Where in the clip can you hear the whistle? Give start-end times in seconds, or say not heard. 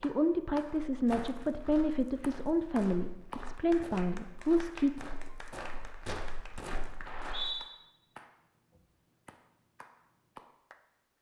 7.0-7.7.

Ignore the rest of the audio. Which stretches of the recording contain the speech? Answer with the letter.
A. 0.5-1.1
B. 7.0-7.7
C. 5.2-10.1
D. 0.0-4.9
D.